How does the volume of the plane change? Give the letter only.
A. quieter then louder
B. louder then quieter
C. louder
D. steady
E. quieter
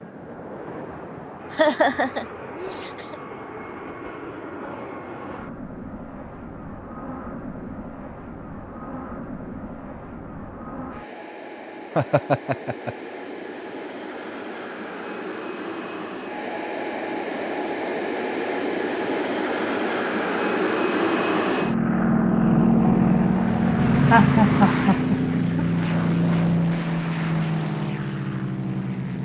C.